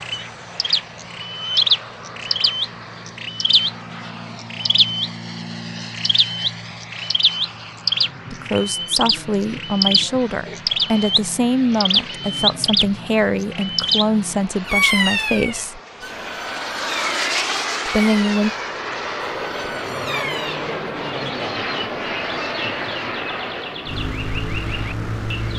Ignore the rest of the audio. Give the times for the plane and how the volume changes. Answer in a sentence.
The plane can be heard from 0.0 to 25.5 s, getting louder.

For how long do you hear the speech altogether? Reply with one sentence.
The speech can be heard for 8 seconds in total.